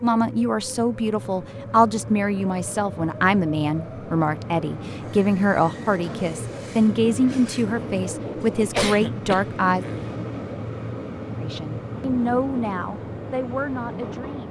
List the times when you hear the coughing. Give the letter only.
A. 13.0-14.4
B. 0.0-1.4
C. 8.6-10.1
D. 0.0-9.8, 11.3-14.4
C.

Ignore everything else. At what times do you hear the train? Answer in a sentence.
You can hear the train from 0.0 to 14.4 s.